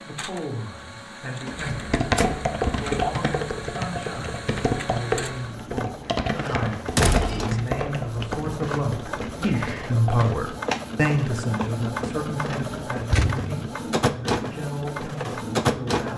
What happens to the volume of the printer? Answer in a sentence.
The loudness of the printer goes up.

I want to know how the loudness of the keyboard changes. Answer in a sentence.
The loudness of the keyboard goes down.